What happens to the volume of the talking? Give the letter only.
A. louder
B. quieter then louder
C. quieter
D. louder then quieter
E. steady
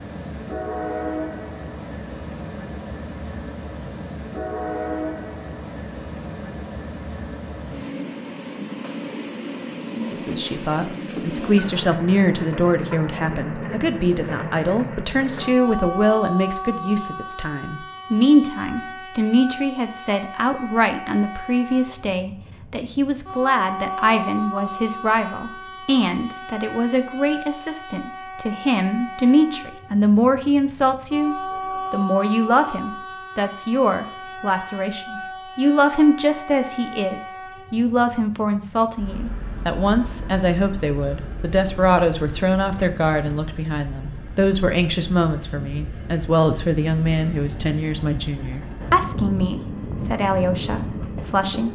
E.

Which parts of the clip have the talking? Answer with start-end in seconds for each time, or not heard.
10.1-51.6.